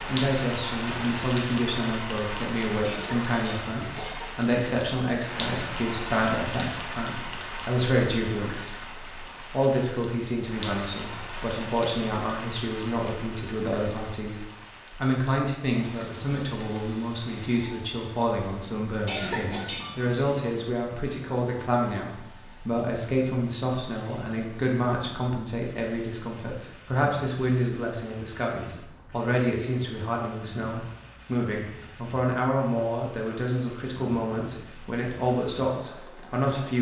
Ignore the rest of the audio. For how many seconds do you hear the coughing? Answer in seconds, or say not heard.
3 s.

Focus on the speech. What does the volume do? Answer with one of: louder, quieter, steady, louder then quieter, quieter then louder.
steady.